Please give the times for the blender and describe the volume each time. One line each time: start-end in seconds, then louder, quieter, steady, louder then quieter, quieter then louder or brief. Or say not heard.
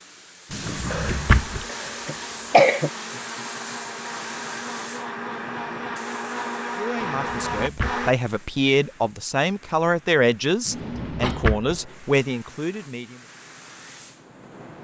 0.1-8.2 louder.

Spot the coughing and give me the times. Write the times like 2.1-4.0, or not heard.
0.9-2.9, 10.7-11.6.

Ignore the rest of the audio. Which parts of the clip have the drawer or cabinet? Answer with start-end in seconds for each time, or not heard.
0.5-1.6, 7.0-8.1, 10.7-11.8.